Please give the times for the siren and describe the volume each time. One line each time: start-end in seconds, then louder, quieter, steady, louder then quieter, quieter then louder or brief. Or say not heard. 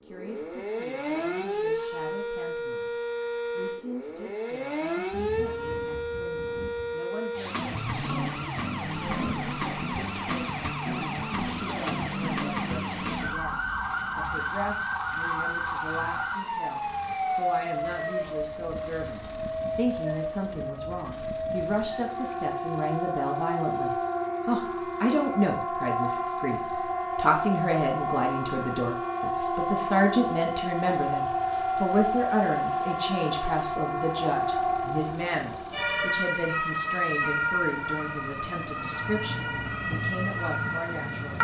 0.1-41.3 steady.